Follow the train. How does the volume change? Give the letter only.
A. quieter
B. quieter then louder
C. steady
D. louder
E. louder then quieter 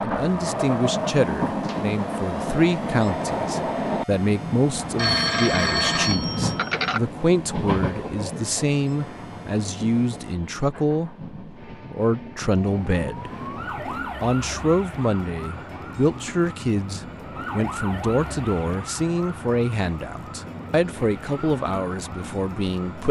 A.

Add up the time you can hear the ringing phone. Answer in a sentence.
The ringing phone can be heard for 2 seconds in total.